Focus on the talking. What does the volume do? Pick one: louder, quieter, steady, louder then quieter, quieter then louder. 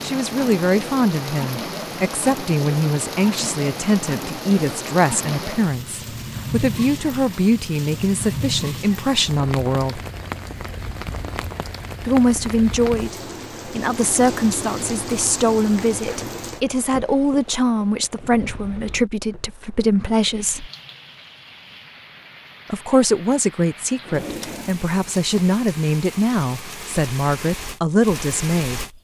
steady.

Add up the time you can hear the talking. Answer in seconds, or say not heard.
25 s.